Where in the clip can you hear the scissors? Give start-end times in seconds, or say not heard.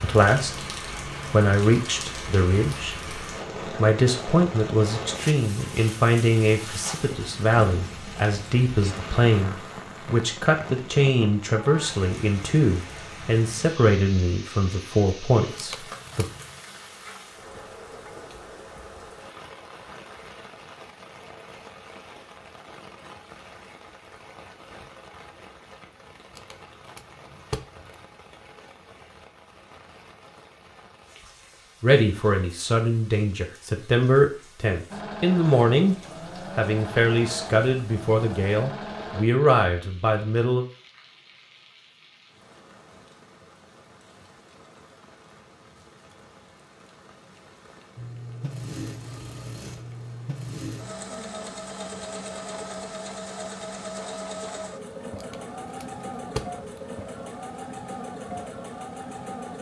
15.6-16.6, 26.4-28.1, 55.1-56.9.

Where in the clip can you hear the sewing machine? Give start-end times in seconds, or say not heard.
34.9-39.2, 48.0-59.5.